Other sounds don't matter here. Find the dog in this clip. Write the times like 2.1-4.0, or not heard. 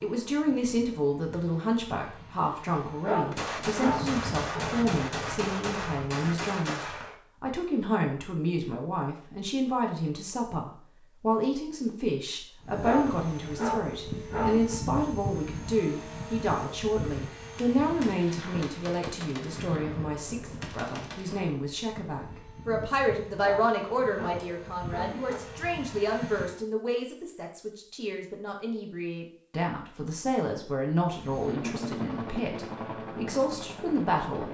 3.0-4.7, 12.8-14.8, 23.4-25.4.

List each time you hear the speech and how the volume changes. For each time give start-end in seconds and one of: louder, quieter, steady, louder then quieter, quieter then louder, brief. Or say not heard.
0.0-34.5 steady.